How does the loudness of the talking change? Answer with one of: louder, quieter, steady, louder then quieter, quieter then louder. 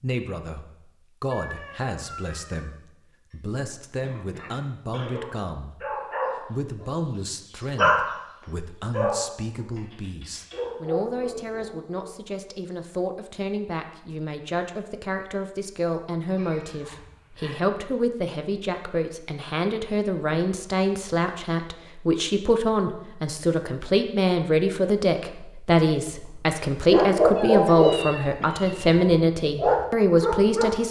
louder.